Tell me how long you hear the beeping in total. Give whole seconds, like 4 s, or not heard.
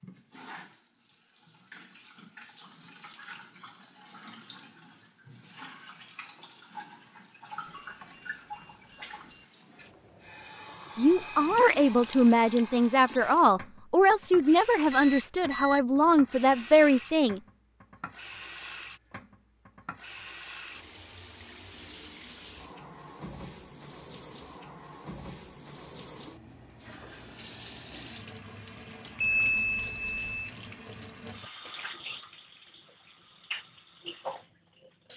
4 s.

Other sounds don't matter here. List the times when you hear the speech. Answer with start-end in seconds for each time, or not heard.
10.9-17.4.